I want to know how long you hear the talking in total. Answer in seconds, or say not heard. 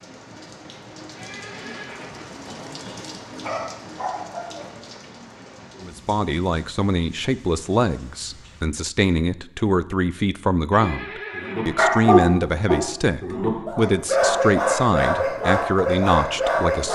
11 s.